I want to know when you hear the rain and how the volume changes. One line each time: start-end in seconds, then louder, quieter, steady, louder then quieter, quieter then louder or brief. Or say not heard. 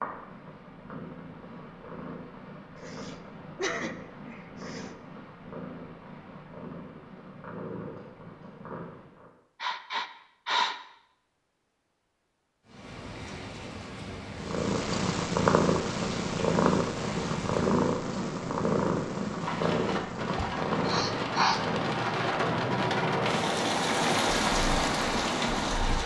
12.7-26.0 louder.